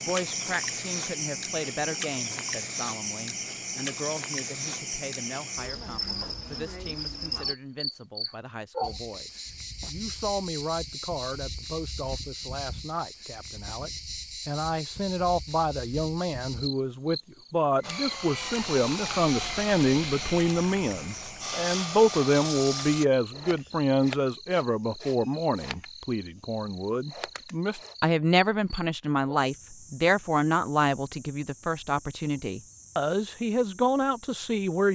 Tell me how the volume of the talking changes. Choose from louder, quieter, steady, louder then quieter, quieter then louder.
louder.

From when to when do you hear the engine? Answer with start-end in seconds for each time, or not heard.
17.8-23.1.